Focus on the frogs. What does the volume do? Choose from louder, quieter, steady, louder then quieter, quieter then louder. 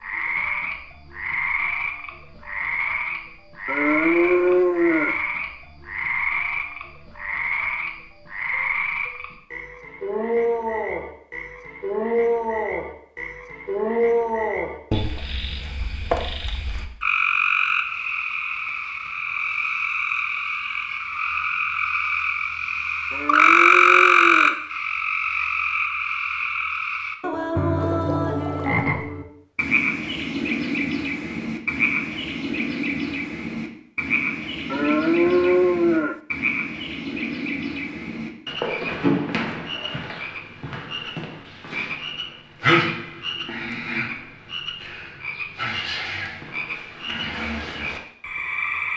louder then quieter.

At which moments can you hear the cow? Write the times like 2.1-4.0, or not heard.
3.6-5.2, 23.1-24.6, 34.7-36.2.